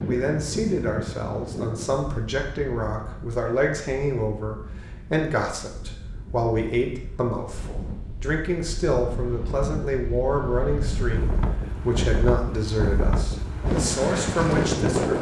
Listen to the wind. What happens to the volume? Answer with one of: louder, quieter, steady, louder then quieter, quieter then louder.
quieter then louder.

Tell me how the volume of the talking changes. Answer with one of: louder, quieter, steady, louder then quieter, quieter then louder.
steady.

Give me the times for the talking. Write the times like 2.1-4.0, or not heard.
0.1-15.1.